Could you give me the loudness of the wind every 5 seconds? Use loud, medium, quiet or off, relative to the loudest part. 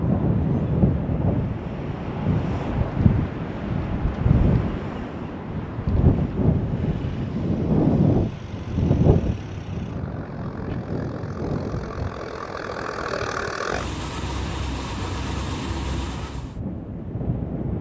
loud, loud, medium, medium.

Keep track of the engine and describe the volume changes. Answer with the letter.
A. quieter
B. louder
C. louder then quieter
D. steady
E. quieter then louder
B.